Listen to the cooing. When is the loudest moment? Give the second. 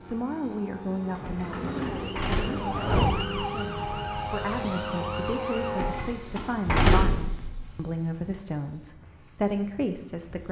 2 s.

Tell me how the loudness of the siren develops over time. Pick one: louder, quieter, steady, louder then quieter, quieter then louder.
louder then quieter.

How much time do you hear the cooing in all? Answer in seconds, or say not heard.
2 s.